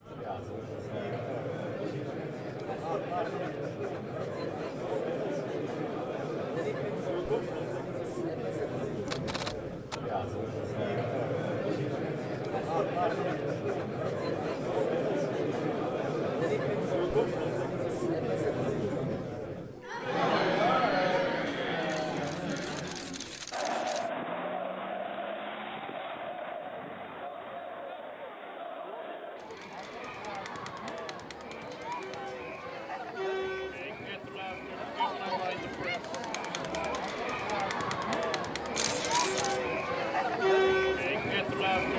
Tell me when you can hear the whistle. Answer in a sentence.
The whistle can't be heard in this clip.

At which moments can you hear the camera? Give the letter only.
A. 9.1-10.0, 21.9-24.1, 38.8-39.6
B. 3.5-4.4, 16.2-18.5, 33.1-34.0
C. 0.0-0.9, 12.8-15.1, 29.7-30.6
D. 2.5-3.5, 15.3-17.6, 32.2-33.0
A.